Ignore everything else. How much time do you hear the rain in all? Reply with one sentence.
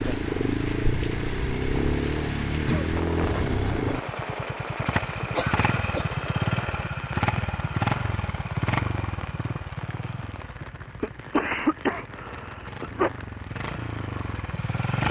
The rain can be heard for 15 seconds in total.